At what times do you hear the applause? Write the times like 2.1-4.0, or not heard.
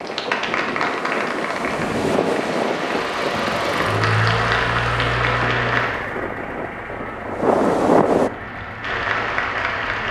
0.0-6.0, 8.3-10.0.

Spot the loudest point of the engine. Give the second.
4 s.